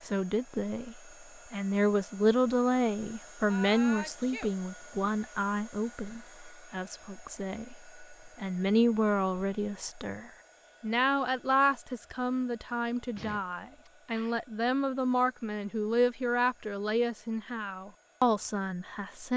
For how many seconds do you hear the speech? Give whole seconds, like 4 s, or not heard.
19 s.